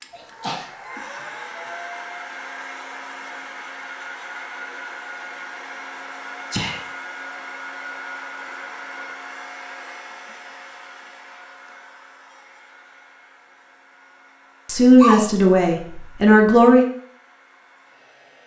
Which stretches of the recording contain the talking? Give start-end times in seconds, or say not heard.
14.7-16.9.